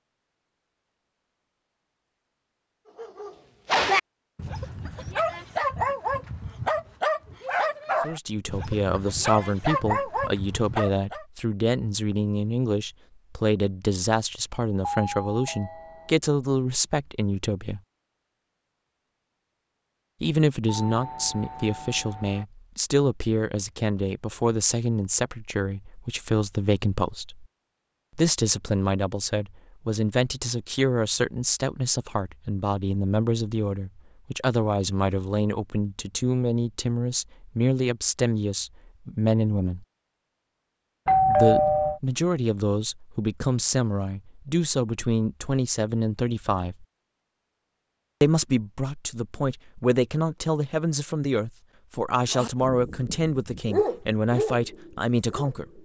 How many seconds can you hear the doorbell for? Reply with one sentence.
The doorbell can be heard for 4 seconds in total.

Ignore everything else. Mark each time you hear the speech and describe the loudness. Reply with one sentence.
You can hear the speech from 8.0 to 17.8 s, at a steady volume; from 20.2 to 27.4 s, at a steady volume; from 28.1 to 39.9 s, at a steady volume; from 41.2 to 46.9 s, at a steady volume; and from 48.2 to 55.7 s, at a steady volume.